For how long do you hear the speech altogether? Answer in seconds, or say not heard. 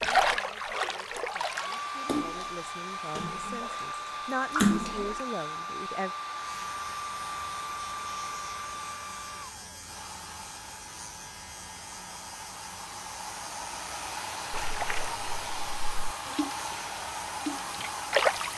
6 s.